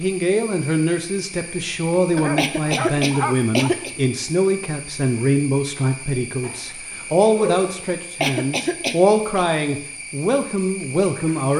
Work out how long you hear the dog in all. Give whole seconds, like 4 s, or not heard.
3 s.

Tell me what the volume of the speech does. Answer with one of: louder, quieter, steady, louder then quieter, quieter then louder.
steady.